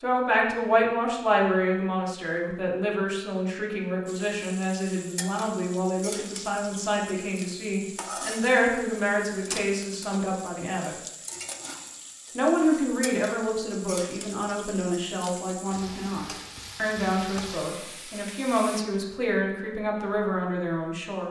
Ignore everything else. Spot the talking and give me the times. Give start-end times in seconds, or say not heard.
0.0-10.9, 12.3-21.2.